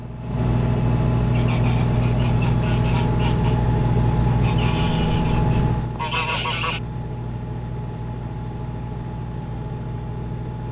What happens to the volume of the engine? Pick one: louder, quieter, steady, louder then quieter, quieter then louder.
quieter.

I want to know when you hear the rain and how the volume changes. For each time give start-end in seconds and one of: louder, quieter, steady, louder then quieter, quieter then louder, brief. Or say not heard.
not heard.